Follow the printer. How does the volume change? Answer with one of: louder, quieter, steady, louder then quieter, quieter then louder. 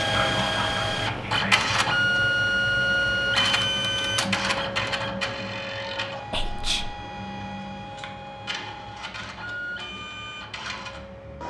quieter.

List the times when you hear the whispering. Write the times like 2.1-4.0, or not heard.
0.1-1.7, 6.3-6.9.